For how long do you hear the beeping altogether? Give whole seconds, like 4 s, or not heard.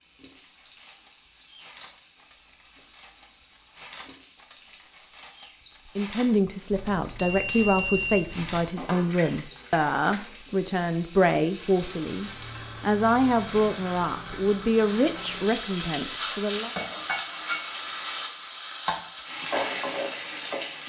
2 s.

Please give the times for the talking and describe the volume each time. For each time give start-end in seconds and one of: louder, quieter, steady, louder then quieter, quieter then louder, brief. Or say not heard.
6.0-16.7 steady.